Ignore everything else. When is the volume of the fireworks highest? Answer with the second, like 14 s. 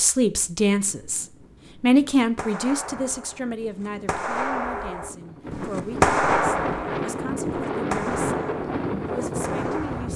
6 s.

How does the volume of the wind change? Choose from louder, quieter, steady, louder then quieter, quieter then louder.
louder.